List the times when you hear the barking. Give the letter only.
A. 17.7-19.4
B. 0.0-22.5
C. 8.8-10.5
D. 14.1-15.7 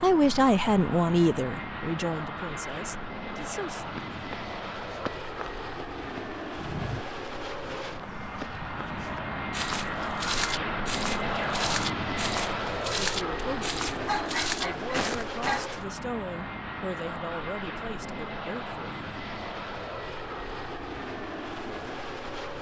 D.